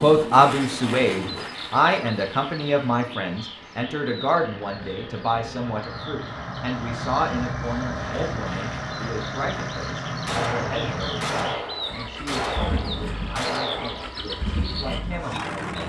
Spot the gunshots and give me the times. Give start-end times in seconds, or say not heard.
10.2-14.1.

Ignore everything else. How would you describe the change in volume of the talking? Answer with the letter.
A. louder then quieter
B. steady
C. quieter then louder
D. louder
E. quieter
E.